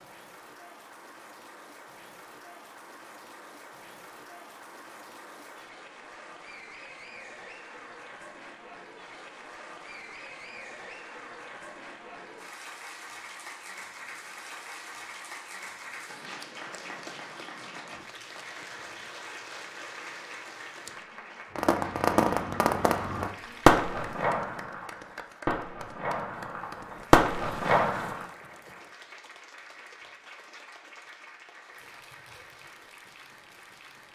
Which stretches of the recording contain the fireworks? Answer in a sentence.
The fireworks can be heard from 21.6 to 28.2 s.